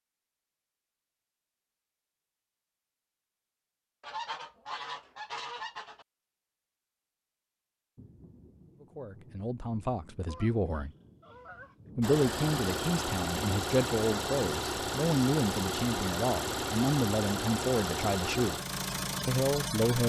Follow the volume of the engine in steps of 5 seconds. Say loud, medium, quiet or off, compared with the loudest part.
off, off, loud, loud.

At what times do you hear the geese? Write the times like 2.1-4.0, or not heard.
4.0-6.0, 10.2-11.8.